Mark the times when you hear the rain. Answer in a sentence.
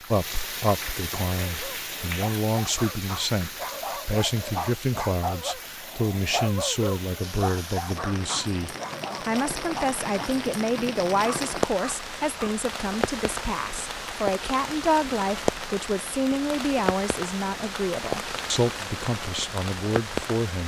You can hear the rain from 0.0 to 20.6 s.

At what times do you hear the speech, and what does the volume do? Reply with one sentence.
You can hear the speech from 0.1 to 20.6 s, at a steady volume.